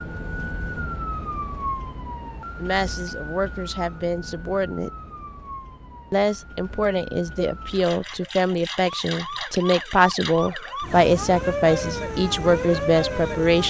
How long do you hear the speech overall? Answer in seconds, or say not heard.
10 s.